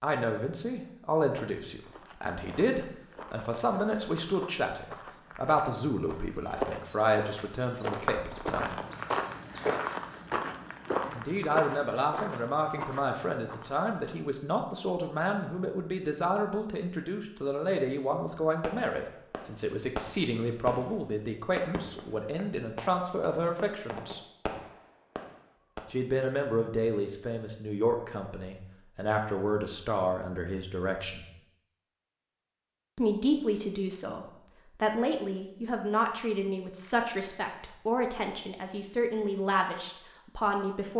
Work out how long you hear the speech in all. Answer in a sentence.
You can hear the speech for 35 seconds altogether.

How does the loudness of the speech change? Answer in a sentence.
The volume of the speech stays about the same.